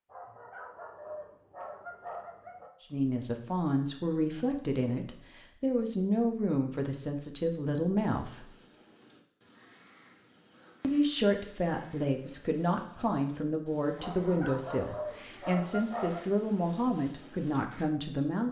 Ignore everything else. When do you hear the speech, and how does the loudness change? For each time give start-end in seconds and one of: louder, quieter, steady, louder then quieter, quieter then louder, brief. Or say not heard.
2.8-8.5 steady
10.8-18.4 steady.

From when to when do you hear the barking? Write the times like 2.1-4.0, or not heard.
0.1-2.7, 13.9-16.2.